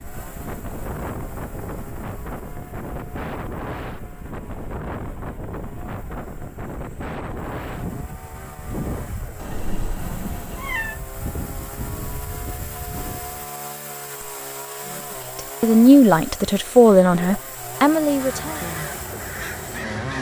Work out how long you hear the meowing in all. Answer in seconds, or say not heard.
2 s.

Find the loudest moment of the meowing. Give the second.
11 s.